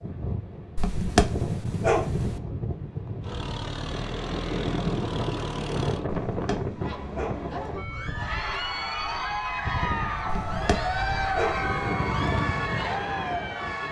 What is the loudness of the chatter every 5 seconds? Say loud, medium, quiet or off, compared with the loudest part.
off, loud, loud.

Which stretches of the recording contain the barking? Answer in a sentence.
The barking can be heard from 0.8 to 2.4 s, from 6.0 to 7.5 s and from 10.2 to 11.7 s.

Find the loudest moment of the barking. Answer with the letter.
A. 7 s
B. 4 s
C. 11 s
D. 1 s
D.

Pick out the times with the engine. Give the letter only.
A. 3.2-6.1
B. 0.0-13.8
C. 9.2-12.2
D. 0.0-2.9
A.